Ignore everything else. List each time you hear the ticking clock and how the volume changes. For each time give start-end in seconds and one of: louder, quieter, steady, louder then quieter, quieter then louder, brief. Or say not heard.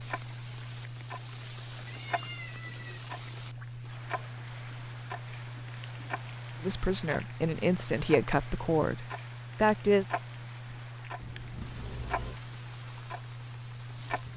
0.0-14.3 steady.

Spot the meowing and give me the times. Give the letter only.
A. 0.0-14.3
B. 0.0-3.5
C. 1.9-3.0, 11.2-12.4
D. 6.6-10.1
C.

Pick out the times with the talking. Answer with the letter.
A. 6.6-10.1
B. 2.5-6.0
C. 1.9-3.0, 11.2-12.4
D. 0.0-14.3
A.